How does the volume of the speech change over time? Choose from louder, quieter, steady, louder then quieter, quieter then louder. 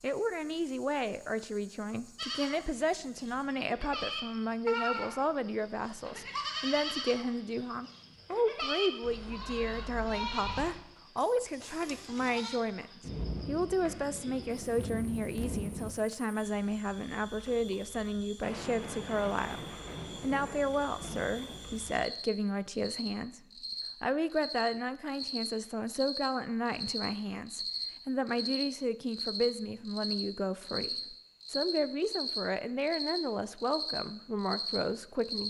steady.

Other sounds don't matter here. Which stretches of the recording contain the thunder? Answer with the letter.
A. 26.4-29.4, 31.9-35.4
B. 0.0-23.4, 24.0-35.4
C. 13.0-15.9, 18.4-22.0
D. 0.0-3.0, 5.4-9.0
C.